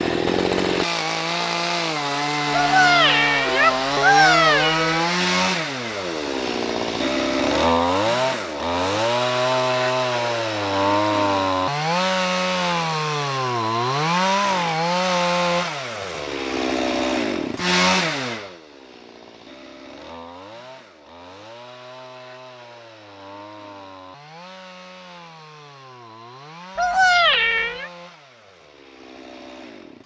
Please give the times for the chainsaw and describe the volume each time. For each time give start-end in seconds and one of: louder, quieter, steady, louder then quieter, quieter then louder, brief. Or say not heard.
0.0-30.0 quieter.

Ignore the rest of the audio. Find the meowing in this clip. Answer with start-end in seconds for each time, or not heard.
2.5-5.0, 26.8-27.9.